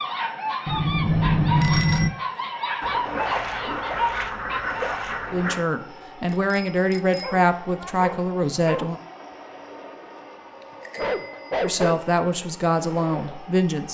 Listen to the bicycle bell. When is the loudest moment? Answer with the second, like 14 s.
2 s.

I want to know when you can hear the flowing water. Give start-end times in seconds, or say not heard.
not heard.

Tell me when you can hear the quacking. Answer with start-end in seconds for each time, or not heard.
2.8-5.6.